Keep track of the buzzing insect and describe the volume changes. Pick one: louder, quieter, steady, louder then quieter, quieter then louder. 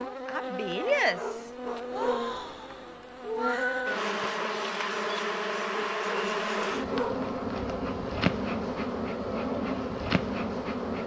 steady.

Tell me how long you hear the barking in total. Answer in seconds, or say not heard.
3 s.